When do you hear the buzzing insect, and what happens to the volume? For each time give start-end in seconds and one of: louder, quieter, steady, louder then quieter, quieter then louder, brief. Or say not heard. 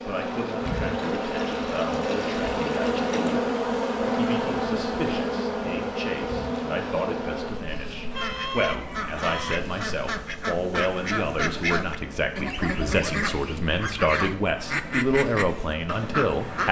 0.0-16.6 quieter.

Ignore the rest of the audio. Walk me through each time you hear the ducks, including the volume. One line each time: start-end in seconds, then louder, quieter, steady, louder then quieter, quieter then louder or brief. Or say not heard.
8.1-16.6 steady.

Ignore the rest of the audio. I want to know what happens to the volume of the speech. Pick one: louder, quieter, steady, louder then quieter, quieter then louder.
louder.